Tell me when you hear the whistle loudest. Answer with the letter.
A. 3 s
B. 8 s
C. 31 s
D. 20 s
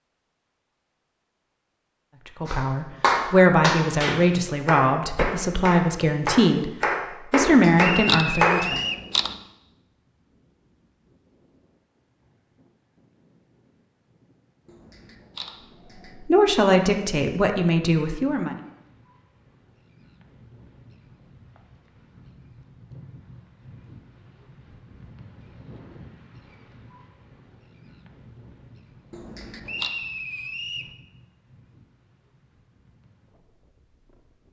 B.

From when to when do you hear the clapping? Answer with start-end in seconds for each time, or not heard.
2.5-8.6.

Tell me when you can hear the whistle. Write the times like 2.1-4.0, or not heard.
7.8-9.1, 29.6-30.9.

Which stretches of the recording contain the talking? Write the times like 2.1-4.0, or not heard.
2.4-8.8, 16.1-18.6.